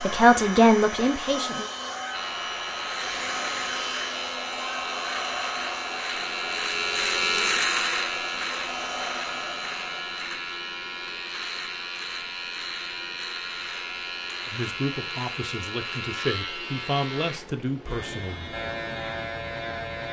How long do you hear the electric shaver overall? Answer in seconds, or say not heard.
18 s.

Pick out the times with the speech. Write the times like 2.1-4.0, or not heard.
0.0-1.7, 14.4-18.5.